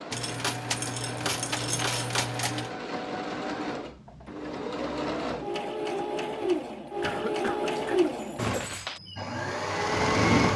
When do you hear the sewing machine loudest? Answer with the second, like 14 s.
10 s.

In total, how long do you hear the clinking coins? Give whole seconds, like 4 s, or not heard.
4 s.